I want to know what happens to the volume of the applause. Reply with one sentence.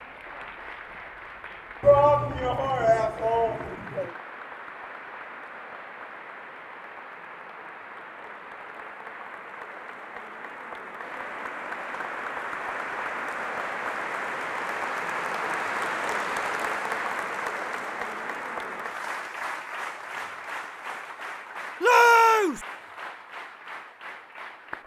The loudness of the applause goes up, then down.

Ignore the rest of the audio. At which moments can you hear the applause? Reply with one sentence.
You can hear the applause from 0.0 to 24.8 s.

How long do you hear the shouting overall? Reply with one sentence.
You can hear the shouting for 3 seconds altogether.